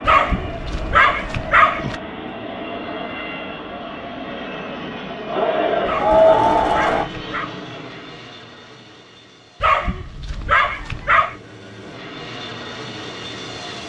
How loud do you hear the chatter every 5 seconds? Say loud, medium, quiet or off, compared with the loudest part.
quiet, loud, off.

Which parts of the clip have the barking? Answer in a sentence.
You can hear the barking from 0.1 to 1.9 s, from 5.8 to 7.5 s and from 9.6 to 11.3 s.